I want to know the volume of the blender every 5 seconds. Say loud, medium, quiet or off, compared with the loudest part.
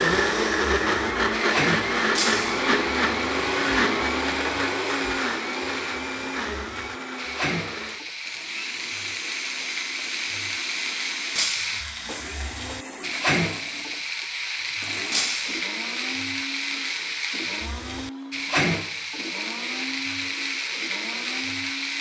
loud, medium, quiet, quiet, quiet.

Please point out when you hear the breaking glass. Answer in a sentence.
You can hear the breaking glass from 2.1 to 2.6 s, from 11.3 to 11.8 s and from 15.1 to 15.6 s.